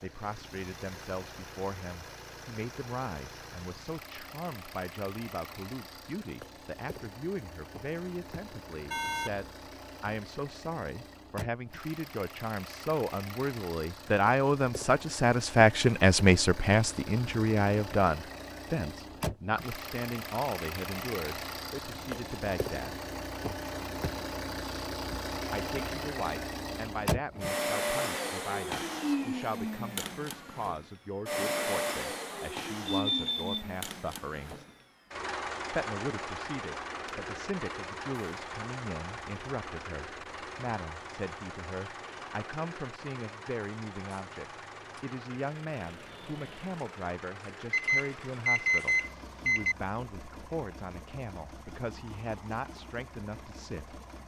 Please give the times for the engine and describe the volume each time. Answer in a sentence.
You can hear the engine from 0.0 to 54.2 s, getting louder then quieter.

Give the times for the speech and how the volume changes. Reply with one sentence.
You can hear the speech from 0.0 to 23.0 s, getting louder then quieter; from 25.5 to 34.6 s, at a steady volume; and from 35.7 to 54.0 s, at a steady volume.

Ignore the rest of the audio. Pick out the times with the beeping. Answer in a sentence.
You can hear the beeping from 8.8 to 9.5 s, from 32.9 to 33.6 s and from 47.7 to 49.8 s.